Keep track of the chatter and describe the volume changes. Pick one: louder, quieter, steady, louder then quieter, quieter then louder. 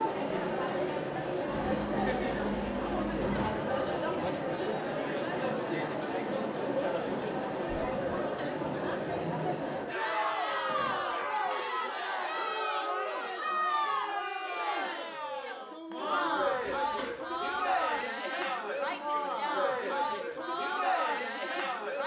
steady.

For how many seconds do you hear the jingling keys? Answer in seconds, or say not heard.
5 s.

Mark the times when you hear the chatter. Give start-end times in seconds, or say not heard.
0.0-22.0.